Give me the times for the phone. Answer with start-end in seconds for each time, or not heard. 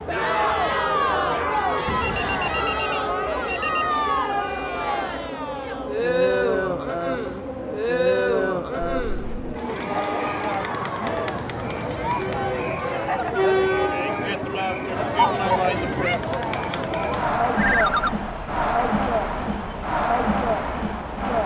1.9-3.9, 9.1-9.6, 17.6-18.1.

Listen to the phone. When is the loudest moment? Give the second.
18 s.